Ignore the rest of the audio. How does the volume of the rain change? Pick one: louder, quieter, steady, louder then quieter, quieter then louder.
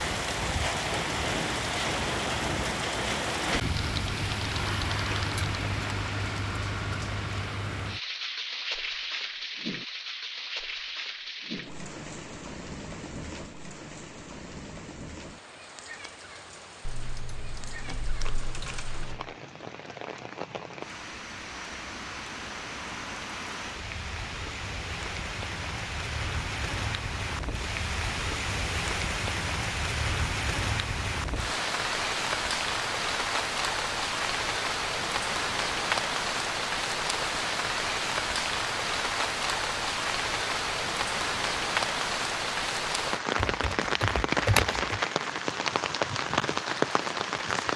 quieter then louder.